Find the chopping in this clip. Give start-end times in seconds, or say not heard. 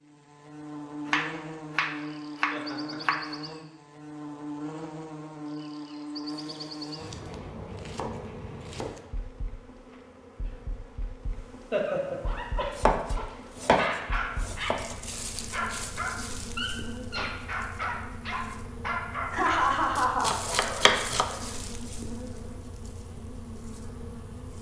1.1-3.3, 6.2-9.1, 12.8-14.9, 19.9-21.3.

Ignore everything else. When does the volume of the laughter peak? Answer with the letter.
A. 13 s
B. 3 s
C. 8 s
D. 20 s
D.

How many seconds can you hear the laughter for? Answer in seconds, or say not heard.
3 s.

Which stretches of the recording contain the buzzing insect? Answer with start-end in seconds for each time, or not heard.
0.0-24.5.